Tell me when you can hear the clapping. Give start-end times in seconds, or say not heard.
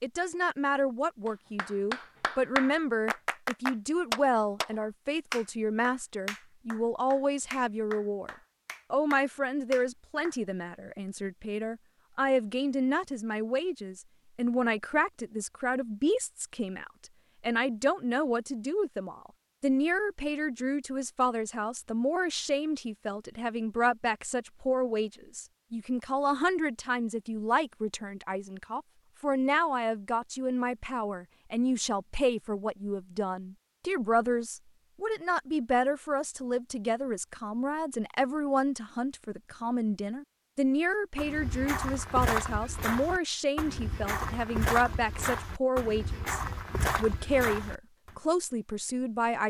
1.2-10.3.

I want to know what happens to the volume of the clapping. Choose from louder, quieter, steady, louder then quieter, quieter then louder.
quieter.